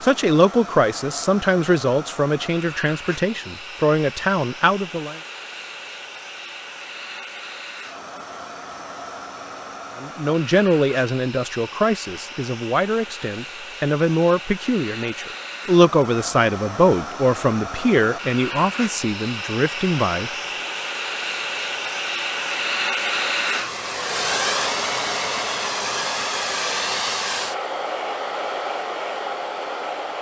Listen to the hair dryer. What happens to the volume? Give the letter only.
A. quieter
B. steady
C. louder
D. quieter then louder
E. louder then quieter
C.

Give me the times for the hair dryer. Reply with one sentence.
You can hear the hair dryer from 0.0 to 30.1 s.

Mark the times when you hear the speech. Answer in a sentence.
The speech can be heard from 0.0 to 5.2 s and from 9.9 to 20.3 s.